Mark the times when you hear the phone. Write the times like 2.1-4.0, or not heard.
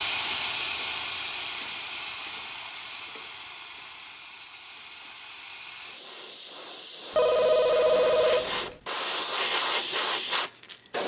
7.2-8.8.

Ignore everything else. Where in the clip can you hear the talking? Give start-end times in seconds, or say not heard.
not heard.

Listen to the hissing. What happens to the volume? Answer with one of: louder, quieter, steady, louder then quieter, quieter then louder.
quieter then louder.